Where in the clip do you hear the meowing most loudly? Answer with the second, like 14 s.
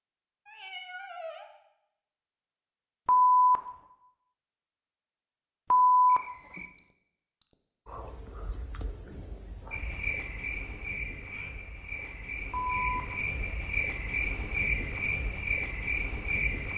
1 s.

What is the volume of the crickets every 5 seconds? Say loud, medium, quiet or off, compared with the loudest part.
off, medium, loud, loud.